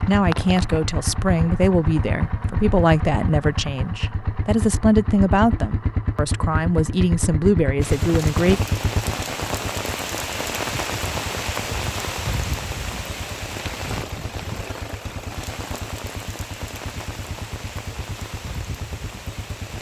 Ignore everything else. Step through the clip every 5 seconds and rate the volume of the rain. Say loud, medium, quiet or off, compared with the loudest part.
off, loud, loud, medium.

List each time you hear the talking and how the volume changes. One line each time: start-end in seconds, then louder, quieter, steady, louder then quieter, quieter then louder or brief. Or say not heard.
0.0-8.6 steady.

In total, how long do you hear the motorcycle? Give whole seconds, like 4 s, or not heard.
20 s.